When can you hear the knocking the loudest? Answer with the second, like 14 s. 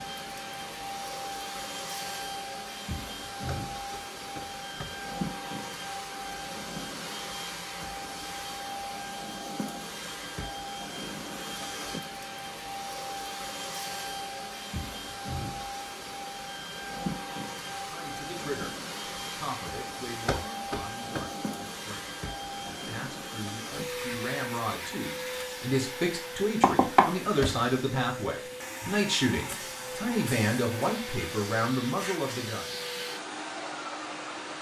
27 s.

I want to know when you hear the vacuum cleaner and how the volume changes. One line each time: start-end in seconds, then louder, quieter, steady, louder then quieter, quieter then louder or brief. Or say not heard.
0.0-34.5 steady.